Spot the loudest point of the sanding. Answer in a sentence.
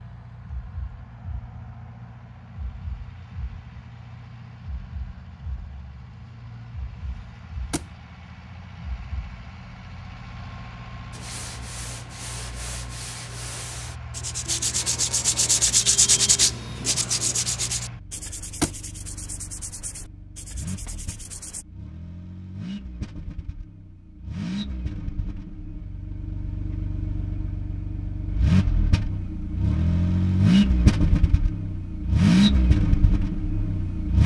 The volume of the sanding peaks at 16 seconds.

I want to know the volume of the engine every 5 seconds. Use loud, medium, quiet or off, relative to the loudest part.
quiet, quiet, quiet, quiet, quiet, medium, loud.